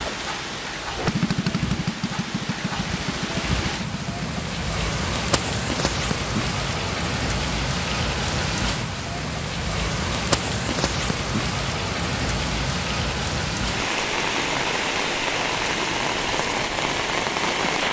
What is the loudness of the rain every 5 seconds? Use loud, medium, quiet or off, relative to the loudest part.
medium, loud, loud, loud.